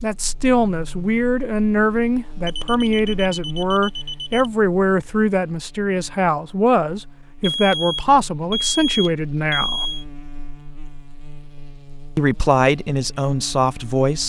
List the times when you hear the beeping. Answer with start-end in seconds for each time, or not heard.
2.5-4.5, 7.4-10.1.